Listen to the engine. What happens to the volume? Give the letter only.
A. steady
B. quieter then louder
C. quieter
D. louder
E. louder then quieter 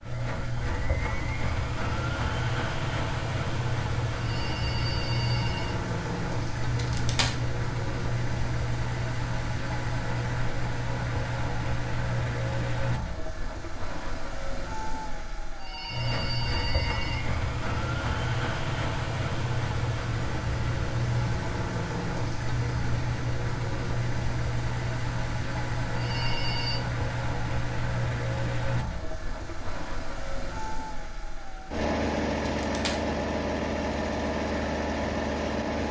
A.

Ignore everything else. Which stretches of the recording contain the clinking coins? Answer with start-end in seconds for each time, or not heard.
6.8-7.3, 32.5-33.0.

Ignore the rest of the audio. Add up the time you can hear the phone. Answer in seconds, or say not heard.
4 s.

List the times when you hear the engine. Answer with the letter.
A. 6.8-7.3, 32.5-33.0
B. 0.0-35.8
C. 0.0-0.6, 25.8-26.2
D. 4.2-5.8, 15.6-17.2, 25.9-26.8
B.